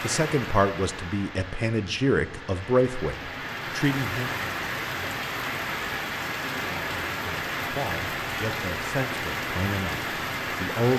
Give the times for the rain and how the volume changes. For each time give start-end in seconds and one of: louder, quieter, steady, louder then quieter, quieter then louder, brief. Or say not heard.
0.0-10.9 louder.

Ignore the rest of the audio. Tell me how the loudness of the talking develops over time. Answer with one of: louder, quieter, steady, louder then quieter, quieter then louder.
quieter then louder.